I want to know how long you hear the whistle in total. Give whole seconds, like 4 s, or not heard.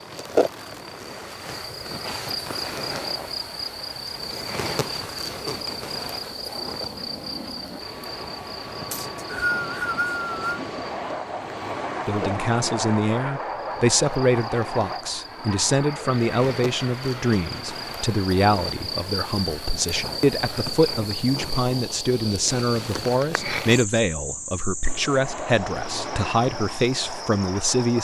2 s.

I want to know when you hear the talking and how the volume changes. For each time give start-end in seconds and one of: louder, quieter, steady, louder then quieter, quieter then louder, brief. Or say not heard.
12.1-28.0 steady.